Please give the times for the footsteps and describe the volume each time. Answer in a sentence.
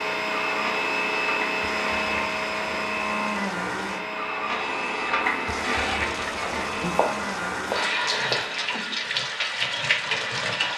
You can't hear the footsteps here.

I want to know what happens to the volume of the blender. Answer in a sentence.
The volume of the blender goes down.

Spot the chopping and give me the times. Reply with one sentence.
The chopping can be heard from 6.8 to 8.6 s.